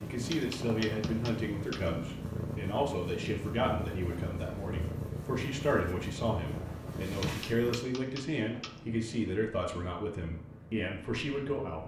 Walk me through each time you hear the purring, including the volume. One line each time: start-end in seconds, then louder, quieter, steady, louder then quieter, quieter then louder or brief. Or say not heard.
0.0-11.8 quieter.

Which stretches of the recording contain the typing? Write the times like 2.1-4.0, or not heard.
0.3-1.9, 7.2-8.8.